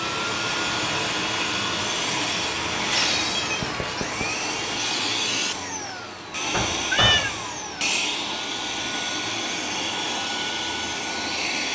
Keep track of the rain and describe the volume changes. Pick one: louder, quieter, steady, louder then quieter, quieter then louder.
quieter.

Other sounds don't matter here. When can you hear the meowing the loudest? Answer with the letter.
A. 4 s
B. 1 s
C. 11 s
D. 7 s
D.